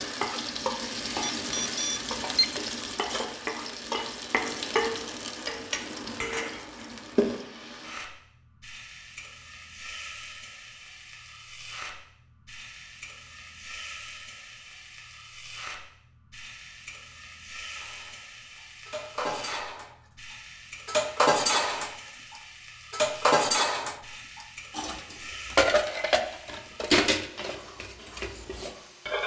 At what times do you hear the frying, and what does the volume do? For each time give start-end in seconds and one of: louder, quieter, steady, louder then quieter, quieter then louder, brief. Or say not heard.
0.0-29.2 quieter.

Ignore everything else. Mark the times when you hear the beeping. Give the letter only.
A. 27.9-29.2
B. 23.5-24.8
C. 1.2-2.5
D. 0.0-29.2
C.